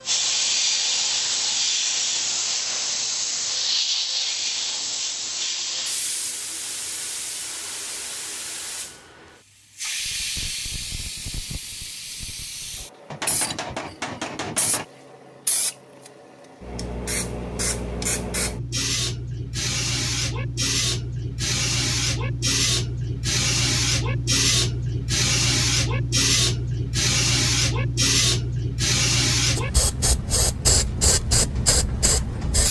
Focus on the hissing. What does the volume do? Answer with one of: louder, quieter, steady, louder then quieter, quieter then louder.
quieter then louder.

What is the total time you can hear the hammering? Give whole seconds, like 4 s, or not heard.
2 s.